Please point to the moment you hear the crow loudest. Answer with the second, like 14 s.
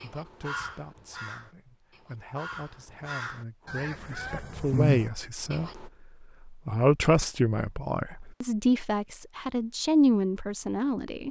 5 s.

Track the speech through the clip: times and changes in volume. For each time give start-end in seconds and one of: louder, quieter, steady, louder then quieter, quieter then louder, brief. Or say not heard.
0.0-11.2 louder.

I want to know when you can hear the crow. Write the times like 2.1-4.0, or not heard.
0.0-5.8.